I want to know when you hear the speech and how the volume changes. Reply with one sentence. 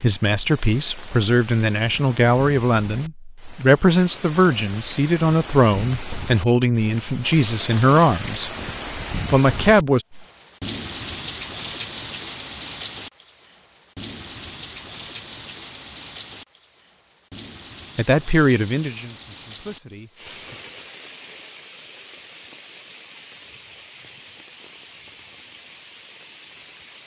You can hear the speech from 0.0 to 8.5 s, at a steady volume; briefly from 9.3 to 10.1 s; and briefly from 17.9 to 20.6 s.